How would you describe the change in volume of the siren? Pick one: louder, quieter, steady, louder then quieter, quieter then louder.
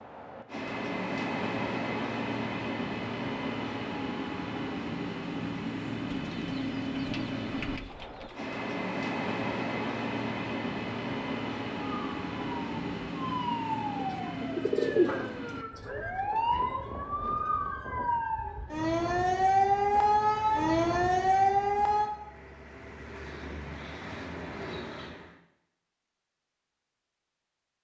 louder.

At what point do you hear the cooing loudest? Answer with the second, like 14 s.
15 s.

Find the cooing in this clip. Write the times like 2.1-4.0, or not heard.
6.1-8.4, 13.9-15.9.